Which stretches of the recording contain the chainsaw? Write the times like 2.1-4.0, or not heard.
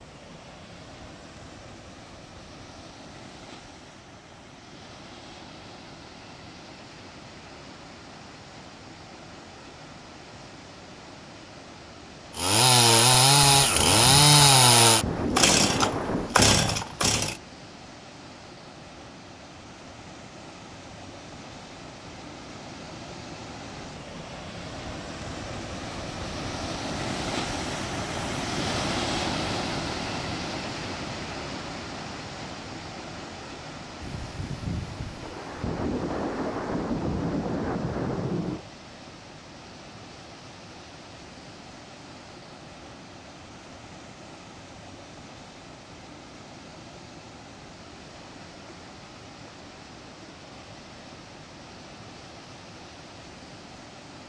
12.3-17.4.